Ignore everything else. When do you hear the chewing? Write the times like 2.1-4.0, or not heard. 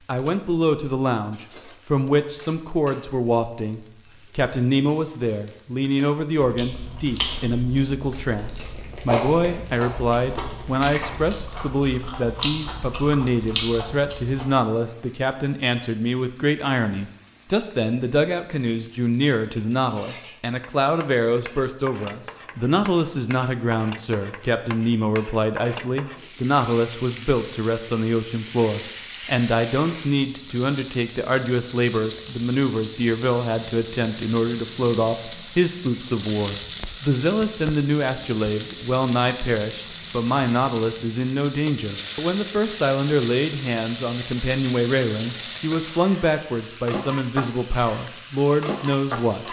6.3-14.5.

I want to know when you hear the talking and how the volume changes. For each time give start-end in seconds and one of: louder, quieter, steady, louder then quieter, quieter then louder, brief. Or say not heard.
0.1-49.4 steady.